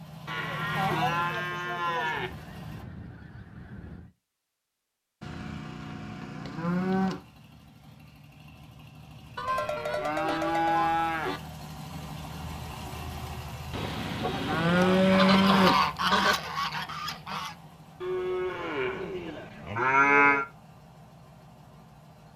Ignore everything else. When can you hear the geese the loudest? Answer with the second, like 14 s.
16 s.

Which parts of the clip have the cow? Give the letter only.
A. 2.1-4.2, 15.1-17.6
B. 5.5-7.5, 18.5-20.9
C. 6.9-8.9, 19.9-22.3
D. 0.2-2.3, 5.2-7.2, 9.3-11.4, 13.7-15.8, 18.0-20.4
D.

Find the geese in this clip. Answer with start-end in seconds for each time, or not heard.
2.1-4.2, 15.1-17.6.